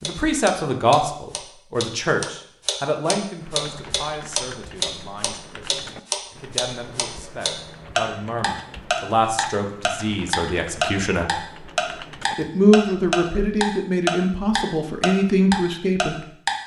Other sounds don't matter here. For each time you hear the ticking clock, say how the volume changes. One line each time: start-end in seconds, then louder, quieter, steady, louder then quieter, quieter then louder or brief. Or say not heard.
0.0-16.6 louder.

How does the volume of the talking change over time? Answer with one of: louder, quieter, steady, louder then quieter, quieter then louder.
quieter then louder.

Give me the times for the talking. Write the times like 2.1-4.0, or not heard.
0.0-11.3, 12.3-16.2.